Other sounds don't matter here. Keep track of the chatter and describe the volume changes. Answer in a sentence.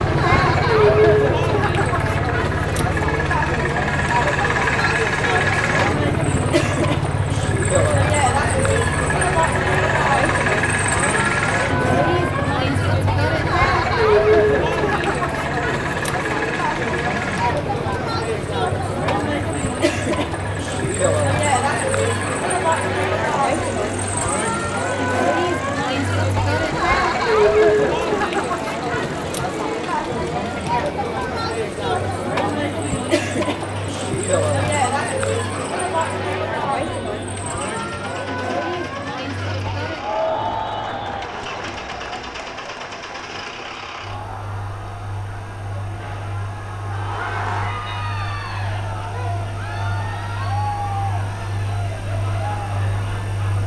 The volume of the chatter goes down.